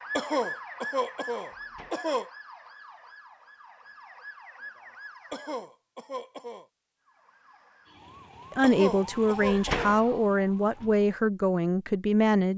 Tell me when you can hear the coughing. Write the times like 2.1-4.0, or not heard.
0.1-2.3, 5.3-6.7, 8.6-9.9.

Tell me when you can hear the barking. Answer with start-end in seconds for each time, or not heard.
not heard.